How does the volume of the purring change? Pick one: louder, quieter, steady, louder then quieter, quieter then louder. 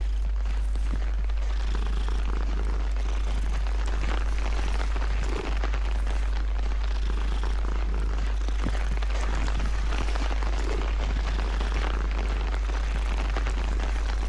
steady.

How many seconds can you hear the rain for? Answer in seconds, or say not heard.
14 s.